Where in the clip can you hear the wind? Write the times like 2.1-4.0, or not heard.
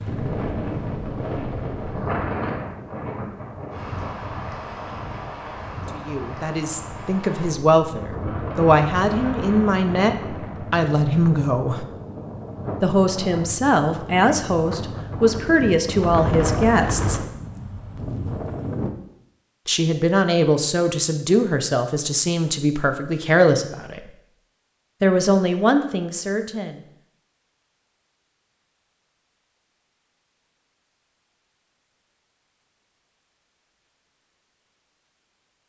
0.0-18.9.